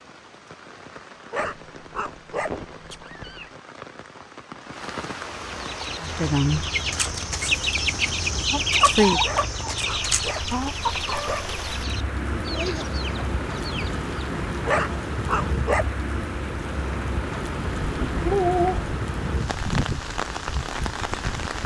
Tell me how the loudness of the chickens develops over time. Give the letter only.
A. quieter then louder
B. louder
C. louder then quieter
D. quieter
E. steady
C.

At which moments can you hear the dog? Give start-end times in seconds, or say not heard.
1.3-3.0, 9.2-11.6, 14.7-15.8.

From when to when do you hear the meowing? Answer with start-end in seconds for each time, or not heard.
1.4-3.5, 17.8-18.9.